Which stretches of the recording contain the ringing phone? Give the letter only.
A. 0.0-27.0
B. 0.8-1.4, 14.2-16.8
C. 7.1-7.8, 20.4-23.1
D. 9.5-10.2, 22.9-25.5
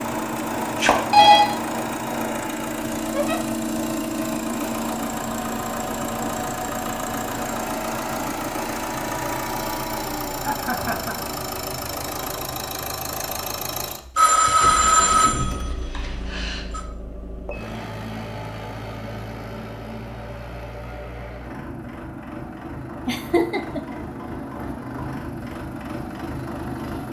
B.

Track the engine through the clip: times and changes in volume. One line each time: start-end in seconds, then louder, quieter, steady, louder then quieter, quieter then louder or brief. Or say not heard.
0.0-27.0 quieter.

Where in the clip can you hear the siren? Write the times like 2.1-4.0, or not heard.
not heard.